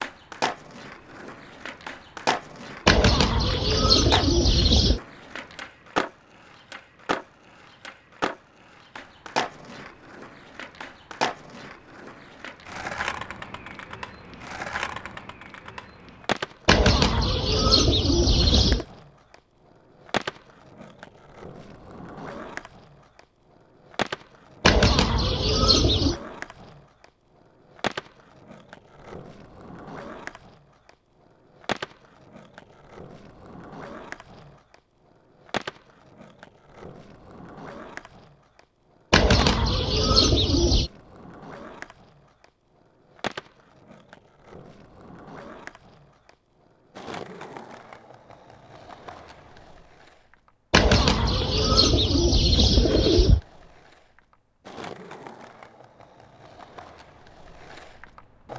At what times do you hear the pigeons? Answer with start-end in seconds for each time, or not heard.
2.9-5.0, 16.6-18.9, 24.6-26.2, 39.1-40.9, 50.7-53.4.